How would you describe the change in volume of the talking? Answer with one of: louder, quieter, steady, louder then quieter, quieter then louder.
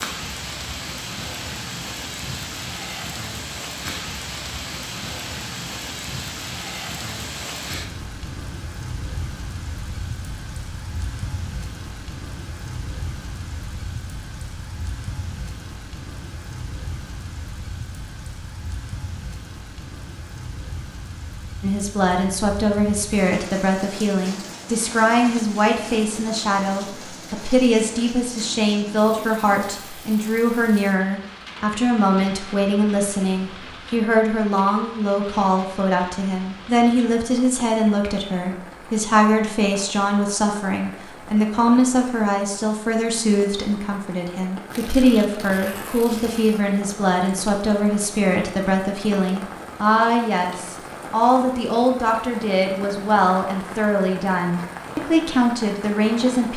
steady.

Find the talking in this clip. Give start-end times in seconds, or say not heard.
21.6-56.5.